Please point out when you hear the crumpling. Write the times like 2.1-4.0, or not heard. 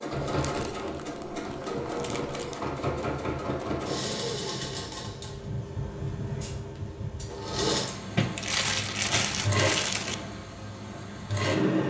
0.2-2.6, 8.2-10.2.